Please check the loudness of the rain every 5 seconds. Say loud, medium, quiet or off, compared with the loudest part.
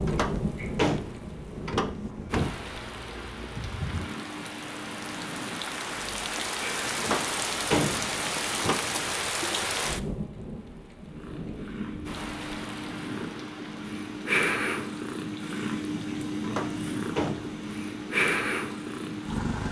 medium, loud, medium, quiet.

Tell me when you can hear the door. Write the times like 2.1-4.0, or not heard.
0.1-2.5, 7.0-8.9, 16.4-17.6.